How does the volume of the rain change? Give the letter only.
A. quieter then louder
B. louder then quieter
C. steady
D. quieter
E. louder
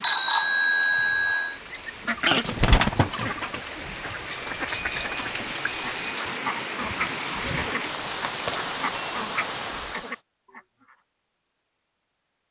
E.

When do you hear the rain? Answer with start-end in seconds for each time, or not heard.
0.0-10.2.